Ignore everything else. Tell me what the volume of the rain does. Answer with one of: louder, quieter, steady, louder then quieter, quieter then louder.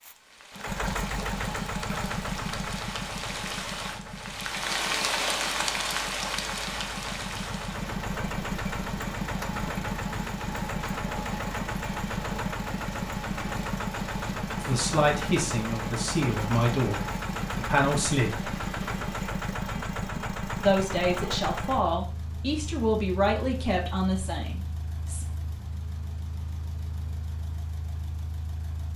louder then quieter.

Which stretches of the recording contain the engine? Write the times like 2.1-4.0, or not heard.
0.0-28.9.